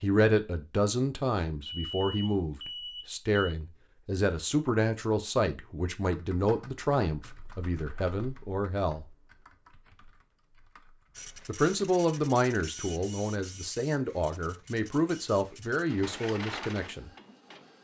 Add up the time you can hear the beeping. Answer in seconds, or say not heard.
2 s.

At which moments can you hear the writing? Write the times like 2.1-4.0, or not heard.
not heard.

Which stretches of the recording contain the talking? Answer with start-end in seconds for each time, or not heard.
0.0-9.1, 11.4-17.1.